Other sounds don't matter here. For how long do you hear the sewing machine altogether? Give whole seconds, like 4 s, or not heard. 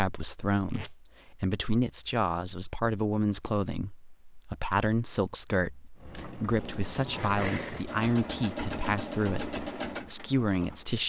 5 s.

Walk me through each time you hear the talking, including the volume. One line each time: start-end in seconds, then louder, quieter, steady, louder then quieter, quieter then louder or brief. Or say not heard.
0.0-11.0 steady.